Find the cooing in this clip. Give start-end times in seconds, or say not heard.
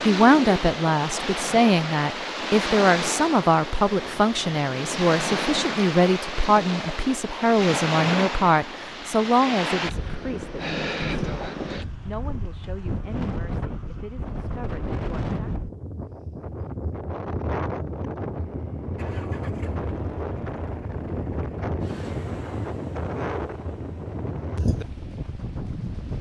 not heard.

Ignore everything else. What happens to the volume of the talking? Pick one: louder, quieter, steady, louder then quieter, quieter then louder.
quieter.